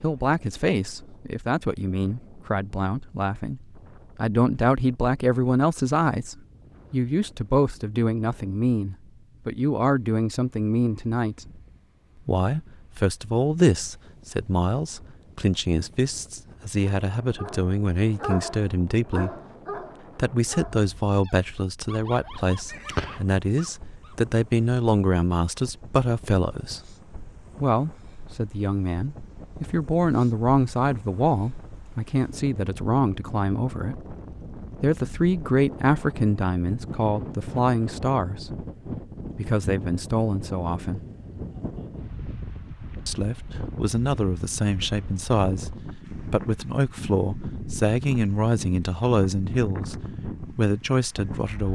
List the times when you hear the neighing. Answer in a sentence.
You can hear the neighing from 22.6 to 23.2 s.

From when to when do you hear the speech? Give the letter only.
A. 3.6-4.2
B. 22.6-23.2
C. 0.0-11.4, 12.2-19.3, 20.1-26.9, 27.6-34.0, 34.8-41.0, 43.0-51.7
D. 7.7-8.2
C.